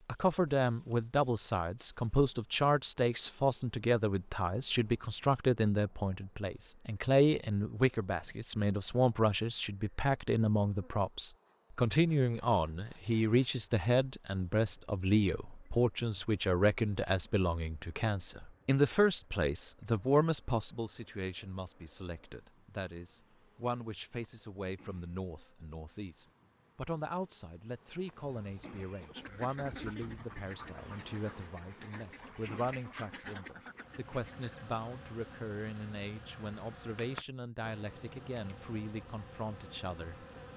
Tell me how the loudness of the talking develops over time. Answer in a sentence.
The loudness of the talking goes down.